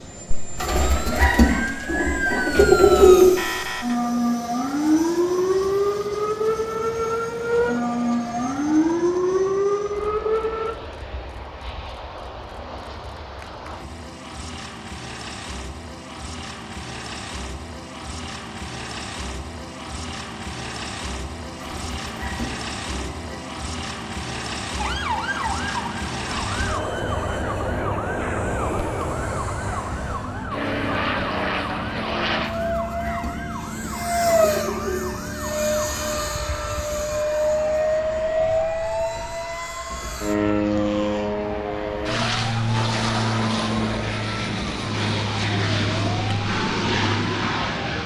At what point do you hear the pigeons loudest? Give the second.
3 s.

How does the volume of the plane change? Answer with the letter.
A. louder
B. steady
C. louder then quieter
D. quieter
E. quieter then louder
A.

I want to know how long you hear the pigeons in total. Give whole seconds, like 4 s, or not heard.
7 s.